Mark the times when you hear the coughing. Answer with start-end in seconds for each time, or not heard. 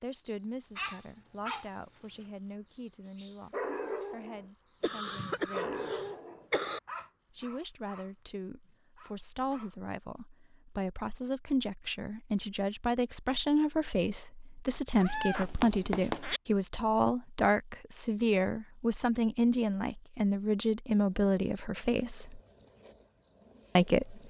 4.8-6.8.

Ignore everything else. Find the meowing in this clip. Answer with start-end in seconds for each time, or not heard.
14.9-16.4.